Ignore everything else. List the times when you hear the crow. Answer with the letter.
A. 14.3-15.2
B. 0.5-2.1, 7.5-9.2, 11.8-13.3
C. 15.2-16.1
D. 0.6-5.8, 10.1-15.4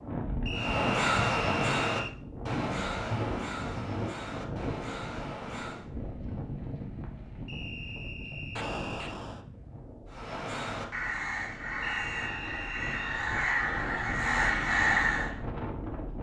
D.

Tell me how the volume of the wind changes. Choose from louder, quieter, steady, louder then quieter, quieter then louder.
quieter then louder.